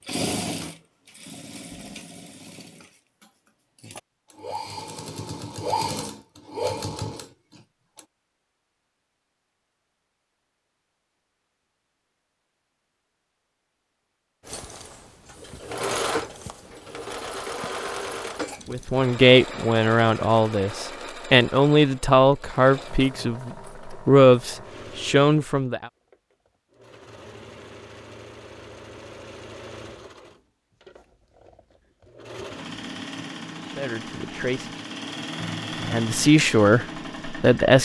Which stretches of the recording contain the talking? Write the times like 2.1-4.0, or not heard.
18.6-25.9, 33.6-34.7, 35.8-37.8.